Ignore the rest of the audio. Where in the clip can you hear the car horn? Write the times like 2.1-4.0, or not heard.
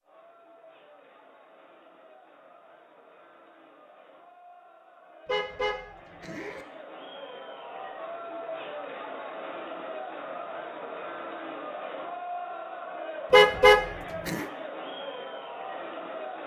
5.2-6.7, 13.3-14.4.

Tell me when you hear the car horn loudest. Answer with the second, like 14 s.
14 s.